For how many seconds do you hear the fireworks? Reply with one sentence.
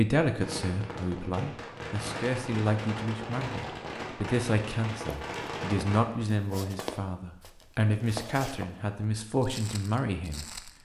The fireworks can be heard for 6 seconds in total.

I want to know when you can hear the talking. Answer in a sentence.
The talking can be heard from 0.0 to 10.7 s.